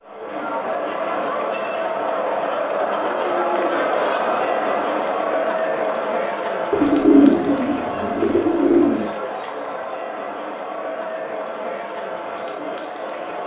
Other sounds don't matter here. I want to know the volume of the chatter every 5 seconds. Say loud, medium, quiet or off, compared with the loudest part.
loud, loud, medium.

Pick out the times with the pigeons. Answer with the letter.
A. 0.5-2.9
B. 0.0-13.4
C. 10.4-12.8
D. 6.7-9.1
D.